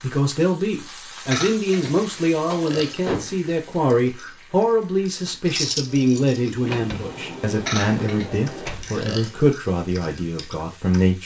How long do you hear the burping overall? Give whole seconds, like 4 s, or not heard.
4 s.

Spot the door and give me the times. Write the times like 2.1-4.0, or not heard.
1.8-3.5, 6.7-8.9.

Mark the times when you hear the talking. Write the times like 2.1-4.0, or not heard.
0.0-11.2.